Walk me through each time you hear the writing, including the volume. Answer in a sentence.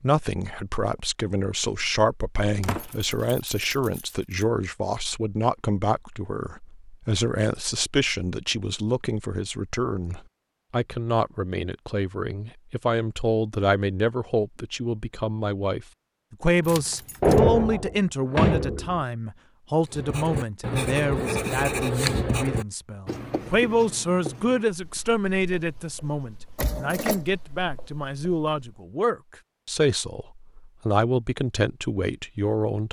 You can hear the writing from 19.9 to 28.6 s, getting quieter.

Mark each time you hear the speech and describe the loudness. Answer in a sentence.
The speech can be heard from 0.0 to 32.8 s, at a steady volume.